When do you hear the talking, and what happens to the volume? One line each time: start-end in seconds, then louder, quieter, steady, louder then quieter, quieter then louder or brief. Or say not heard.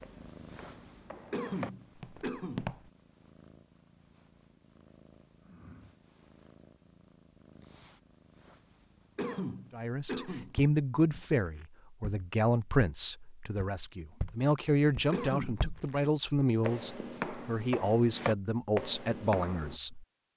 9.7-20.1 steady.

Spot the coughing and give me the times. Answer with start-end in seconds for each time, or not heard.
1.3-2.7, 9.2-10.6, 15.1-16.1.